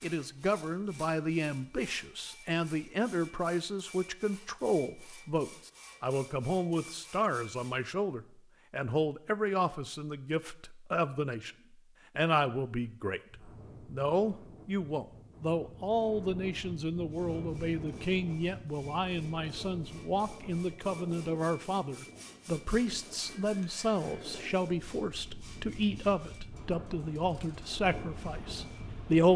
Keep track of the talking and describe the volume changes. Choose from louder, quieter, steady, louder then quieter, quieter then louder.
steady.